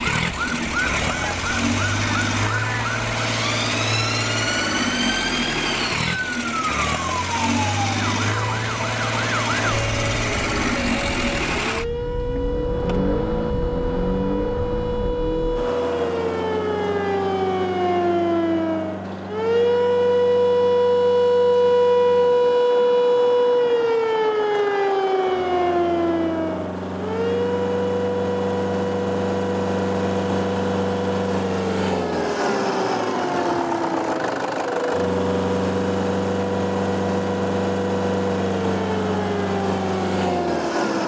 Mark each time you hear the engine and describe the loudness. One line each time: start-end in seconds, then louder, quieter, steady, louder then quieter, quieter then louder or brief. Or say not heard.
0.0-41.0 quieter then louder.